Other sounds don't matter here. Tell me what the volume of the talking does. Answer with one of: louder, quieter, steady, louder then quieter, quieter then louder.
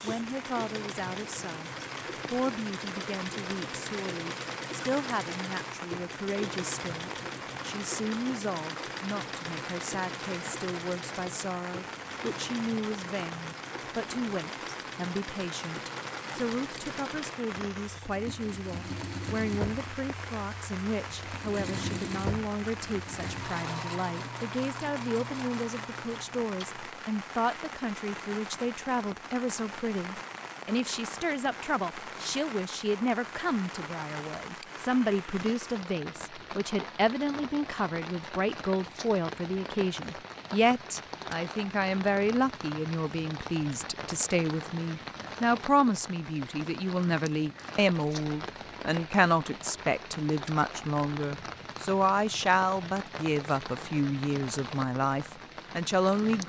louder.